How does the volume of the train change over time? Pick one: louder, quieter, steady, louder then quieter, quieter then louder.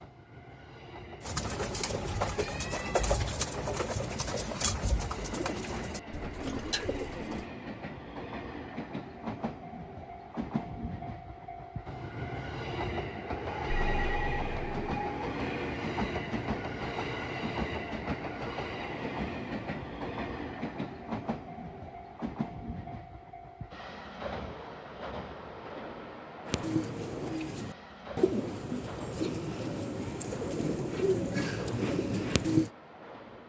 louder then quieter.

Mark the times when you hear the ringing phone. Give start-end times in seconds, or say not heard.
13.7-15.1.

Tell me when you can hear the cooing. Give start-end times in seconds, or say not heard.
1.2-7.5, 26.4-32.7.